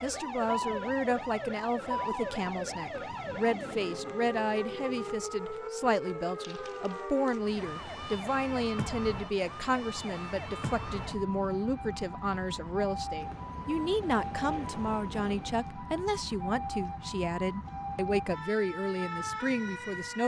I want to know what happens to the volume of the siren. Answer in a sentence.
The volume of the siren stays about the same.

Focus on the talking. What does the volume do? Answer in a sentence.
The volume of the talking stays about the same.